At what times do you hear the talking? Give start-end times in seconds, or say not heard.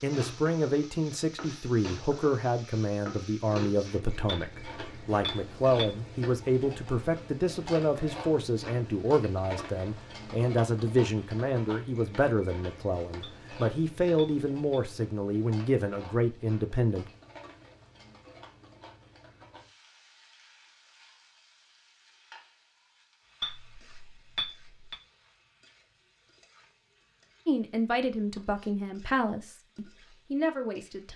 0.0-17.1, 27.4-31.1.